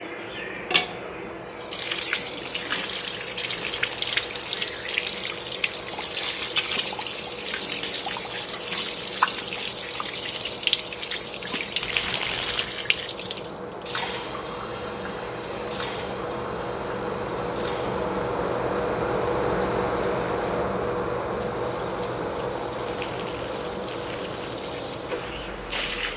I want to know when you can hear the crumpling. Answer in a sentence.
You can hear the crumpling from 3.5 to 4.2 s, from 11.8 to 12.7 s and from 22.9 to 24.6 s.